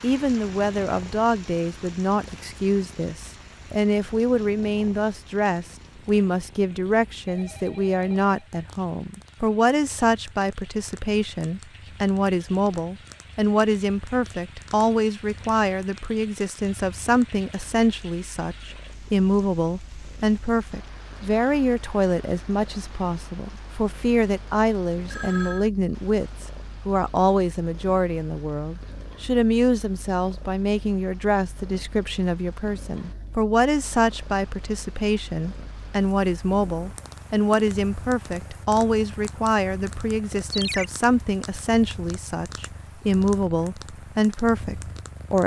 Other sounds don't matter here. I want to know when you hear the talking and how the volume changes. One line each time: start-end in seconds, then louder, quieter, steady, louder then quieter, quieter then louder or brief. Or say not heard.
0.0-45.4 steady.